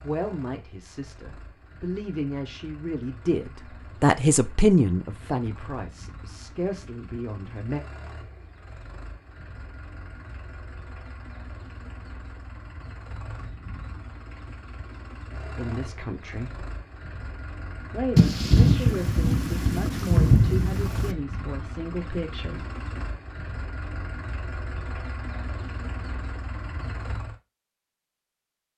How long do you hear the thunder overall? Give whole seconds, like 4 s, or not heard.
3 s.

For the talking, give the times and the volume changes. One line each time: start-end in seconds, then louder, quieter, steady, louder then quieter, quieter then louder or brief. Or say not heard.
0.0-7.8 louder then quieter
15.6-16.6 brief
17.9-22.6 steady.